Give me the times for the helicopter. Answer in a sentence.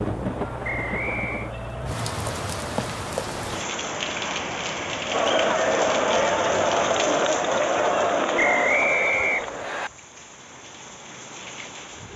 You can't hear the helicopter here.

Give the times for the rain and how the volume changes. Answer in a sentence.
The rain can be heard from 0.0 to 12.1 s, getting quieter.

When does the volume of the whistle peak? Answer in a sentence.
The loudest moment of the whistle is at 9 seconds.